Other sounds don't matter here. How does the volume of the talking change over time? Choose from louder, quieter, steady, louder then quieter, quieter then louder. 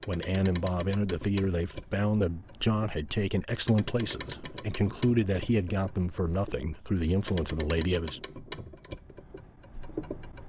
steady.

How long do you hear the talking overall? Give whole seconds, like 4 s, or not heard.
8 s.